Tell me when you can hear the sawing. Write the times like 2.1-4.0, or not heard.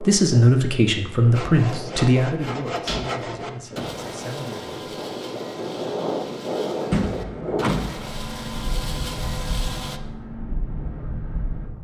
1.3-10.0.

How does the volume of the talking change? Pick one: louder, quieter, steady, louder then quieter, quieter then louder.
quieter.